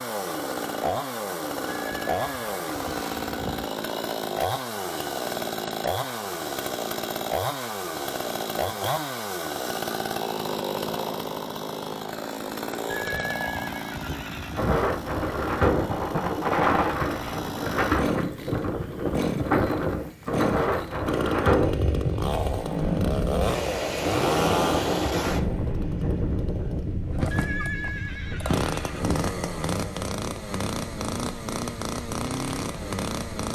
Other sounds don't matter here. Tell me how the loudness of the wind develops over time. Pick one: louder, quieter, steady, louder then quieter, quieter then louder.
quieter.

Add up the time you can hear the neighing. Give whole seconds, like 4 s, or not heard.
6 s.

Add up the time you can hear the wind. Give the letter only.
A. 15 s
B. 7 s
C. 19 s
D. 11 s
C.